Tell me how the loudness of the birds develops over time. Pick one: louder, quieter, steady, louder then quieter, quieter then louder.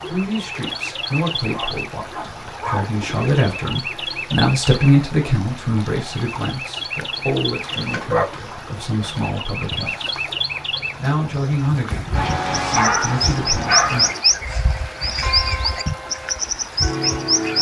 louder.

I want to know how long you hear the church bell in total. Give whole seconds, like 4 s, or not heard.
3 s.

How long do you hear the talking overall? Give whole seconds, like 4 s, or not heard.
13 s.